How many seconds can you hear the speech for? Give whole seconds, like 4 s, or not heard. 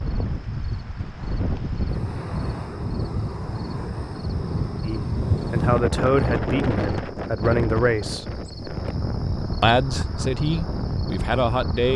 6 s.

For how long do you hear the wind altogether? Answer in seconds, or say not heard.
12 s.